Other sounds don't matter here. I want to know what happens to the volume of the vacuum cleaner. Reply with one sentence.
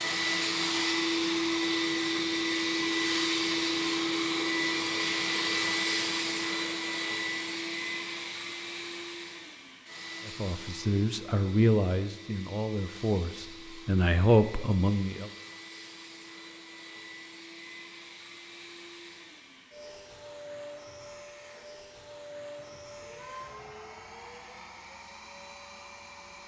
The loudness of the vacuum cleaner goes down.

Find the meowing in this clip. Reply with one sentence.
You can hear the meowing from 22.6 to 23.8 s.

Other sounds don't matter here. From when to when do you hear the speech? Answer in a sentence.
The speech can be heard from 10.2 to 15.3 s.